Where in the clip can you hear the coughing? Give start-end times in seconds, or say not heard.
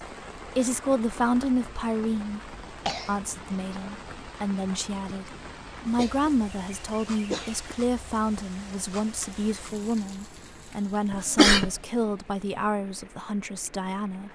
2.7-3.1, 6.0-7.8, 11.1-11.7.